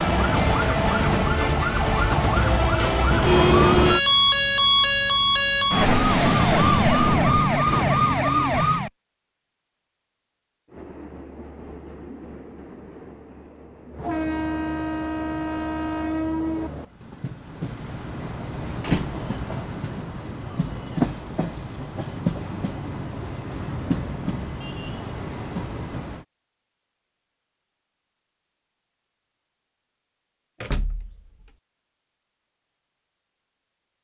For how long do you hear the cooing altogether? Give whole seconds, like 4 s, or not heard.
not heard.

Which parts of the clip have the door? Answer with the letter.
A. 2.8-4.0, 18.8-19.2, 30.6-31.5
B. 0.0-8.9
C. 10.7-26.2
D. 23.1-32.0
A.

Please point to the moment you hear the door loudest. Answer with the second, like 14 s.
4 s.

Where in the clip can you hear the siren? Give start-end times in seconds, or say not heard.
0.0-8.9.